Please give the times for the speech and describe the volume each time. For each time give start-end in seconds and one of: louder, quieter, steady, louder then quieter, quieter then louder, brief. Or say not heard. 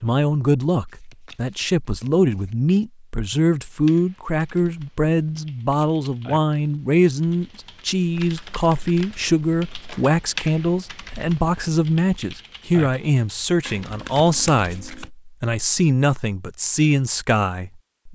0.0-18.1 steady.